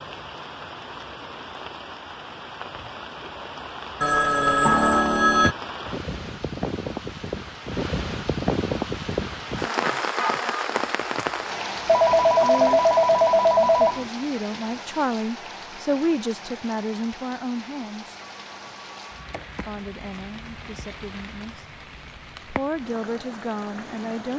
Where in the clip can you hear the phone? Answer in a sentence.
You can hear the phone from 4.0 to 5.5 s, from 11.8 to 14.1 s and from 18.1 to 19.4 s.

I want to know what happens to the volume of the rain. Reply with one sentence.
The volume of the rain goes up, then down.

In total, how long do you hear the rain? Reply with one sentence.
You can hear the rain for 24 seconds altogether.